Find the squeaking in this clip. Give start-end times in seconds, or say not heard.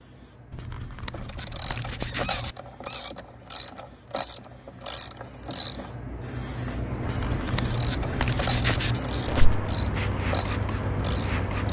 2.0-3.1, 9.2-9.7.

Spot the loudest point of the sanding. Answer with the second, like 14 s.
9 s.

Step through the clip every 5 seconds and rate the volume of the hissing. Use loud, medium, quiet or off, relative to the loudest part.
quiet, loud, loud.